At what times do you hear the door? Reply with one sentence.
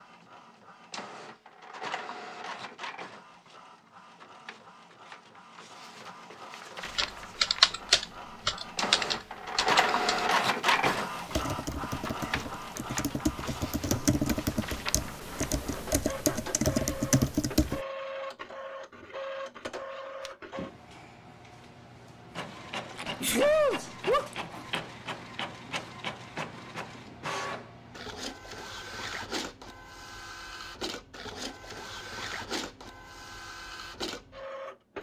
The door can't be heard in this clip.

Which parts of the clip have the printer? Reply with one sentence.
The printer can be heard from 0.0 to 34.9 s.